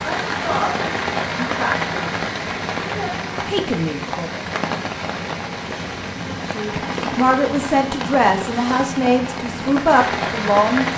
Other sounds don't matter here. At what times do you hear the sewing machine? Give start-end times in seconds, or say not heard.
not heard.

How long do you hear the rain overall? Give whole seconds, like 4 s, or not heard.
11 s.